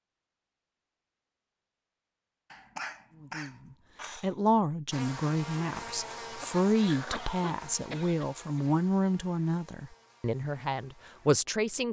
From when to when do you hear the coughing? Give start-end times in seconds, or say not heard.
2.5-4.3, 6.4-8.7.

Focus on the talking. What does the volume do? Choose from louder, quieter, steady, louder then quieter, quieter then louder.
steady.